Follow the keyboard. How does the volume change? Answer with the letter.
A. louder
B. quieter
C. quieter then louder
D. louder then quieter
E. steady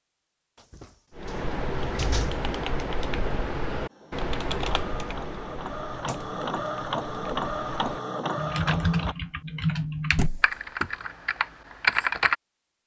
C.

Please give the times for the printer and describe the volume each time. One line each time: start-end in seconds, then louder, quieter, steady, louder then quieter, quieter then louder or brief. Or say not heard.
3.9-9.2 louder.